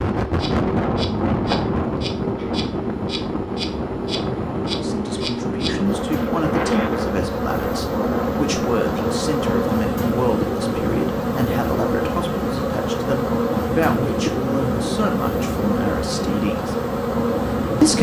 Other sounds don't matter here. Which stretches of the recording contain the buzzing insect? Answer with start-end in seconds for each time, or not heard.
0.0-17.9.